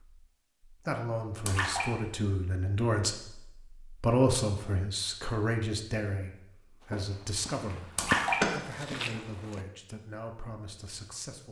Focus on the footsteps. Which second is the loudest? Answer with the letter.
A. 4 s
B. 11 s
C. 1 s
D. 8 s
D.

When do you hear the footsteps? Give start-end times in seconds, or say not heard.
6.8-9.7.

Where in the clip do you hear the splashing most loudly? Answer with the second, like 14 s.
8 s.